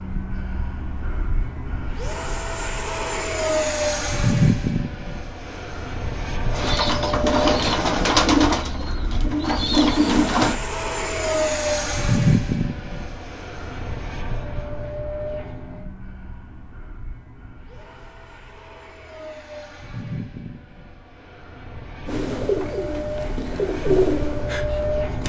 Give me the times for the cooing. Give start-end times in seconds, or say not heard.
6.5-10.6, 22.1-25.2.